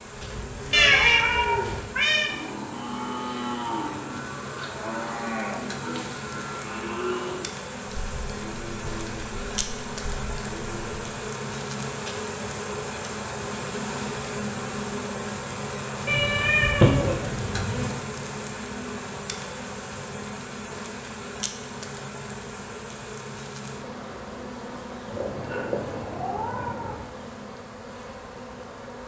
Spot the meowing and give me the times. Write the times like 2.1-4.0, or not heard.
0.7-2.3, 16.1-17.9, 25.1-27.0.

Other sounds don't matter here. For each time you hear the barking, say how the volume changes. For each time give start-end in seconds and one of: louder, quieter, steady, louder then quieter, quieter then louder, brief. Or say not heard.
not heard.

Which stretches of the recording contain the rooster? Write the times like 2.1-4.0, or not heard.
not heard.